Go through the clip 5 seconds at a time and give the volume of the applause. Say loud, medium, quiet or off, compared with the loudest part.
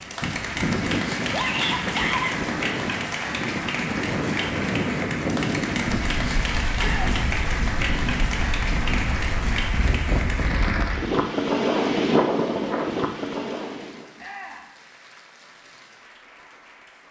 loud, loud, medium, quiet.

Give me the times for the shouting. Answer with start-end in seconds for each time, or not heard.
1.3-2.4, 6.8-7.2, 14.2-14.7.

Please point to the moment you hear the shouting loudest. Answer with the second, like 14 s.
2 s.